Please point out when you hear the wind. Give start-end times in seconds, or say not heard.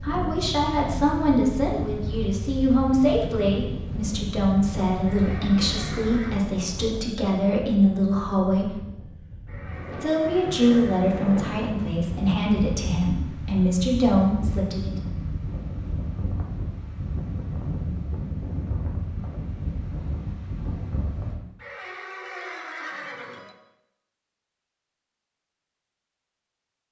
0.0-21.4.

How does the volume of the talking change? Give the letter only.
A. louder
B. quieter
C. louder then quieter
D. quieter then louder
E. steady
E.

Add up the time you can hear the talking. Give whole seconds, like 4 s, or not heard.
14 s.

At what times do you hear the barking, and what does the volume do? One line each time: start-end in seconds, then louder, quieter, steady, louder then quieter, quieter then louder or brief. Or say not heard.
not heard.